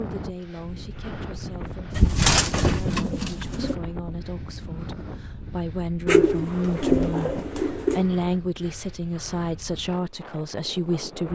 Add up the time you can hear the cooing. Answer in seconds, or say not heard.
4 s.